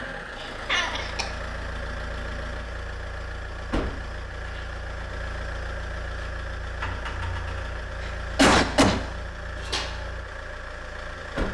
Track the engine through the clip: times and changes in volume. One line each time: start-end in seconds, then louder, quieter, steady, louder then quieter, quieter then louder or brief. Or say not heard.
0.0-11.4 steady.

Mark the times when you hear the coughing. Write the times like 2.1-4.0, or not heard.
0.4-1.3, 8.0-9.0.